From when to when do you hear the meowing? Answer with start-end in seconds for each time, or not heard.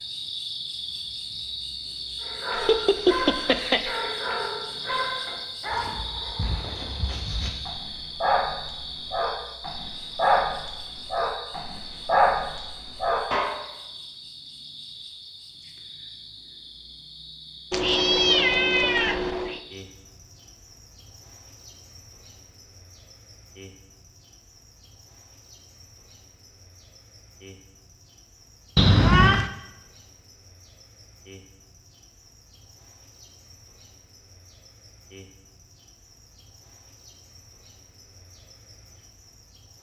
2.5-3.9, 17.7-19.6, 28.8-29.5.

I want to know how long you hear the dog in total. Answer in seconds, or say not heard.
11 s.